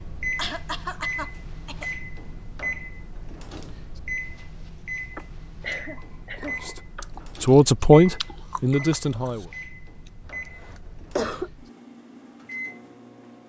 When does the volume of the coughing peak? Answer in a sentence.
The loudest moment of the coughing is at 11 seconds.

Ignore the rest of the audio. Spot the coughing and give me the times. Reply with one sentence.
The coughing can be heard from 0.3 to 1.9 s, from 5.2 to 7.0 s and from 10.2 to 11.5 s.